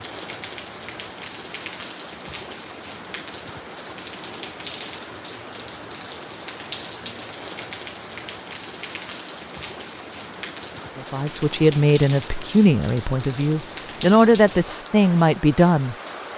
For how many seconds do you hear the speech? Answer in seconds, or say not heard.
5 s.